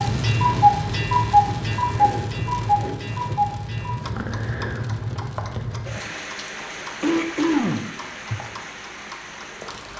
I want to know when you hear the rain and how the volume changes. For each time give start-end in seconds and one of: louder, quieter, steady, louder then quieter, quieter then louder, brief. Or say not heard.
0.0-9.9 quieter.